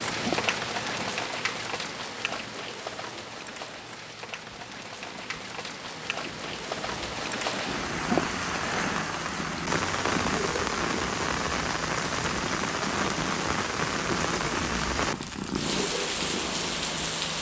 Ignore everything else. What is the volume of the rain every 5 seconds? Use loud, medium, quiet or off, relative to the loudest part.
medium, loud, loud, loud.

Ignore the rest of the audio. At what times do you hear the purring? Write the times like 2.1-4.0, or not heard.
0.0-17.3.